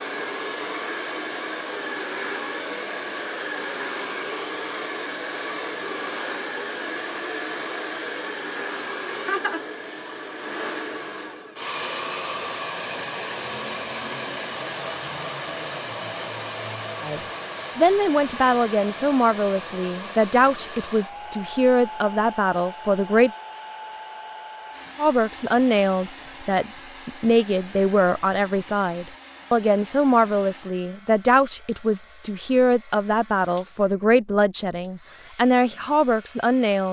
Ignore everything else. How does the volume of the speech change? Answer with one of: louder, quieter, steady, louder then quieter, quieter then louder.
steady.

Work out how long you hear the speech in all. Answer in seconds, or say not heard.
18 s.